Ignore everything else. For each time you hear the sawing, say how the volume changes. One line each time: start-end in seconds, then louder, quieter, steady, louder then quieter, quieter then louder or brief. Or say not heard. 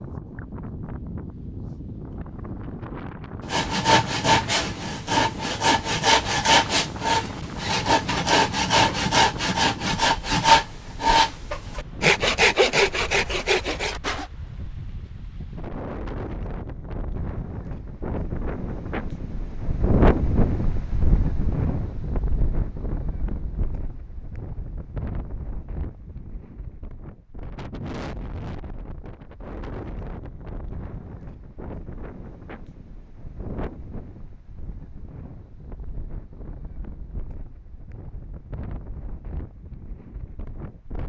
3.5-14.2 steady.